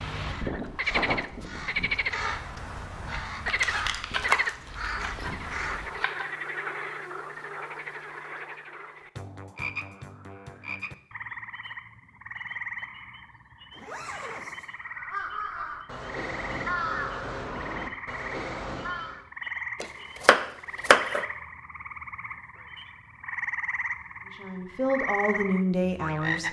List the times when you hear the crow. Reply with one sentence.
You can hear the crow from 0.0 to 6.0 s and from 14.8 to 19.2 s.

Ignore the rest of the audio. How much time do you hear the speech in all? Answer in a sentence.
You can hear the speech for 2 seconds altogether.